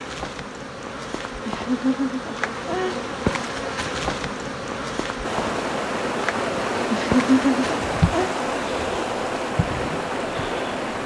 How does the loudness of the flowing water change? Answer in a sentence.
The loudness of the flowing water stays about the same.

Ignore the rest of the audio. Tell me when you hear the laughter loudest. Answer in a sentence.
The volume of the laughter peaks at 7 seconds.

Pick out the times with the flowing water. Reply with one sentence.
The flowing water can be heard from 5.2 to 11.0 s.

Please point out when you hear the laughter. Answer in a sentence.
You can hear the laughter from 1.4 to 3.0 s and from 6.9 to 8.3 s.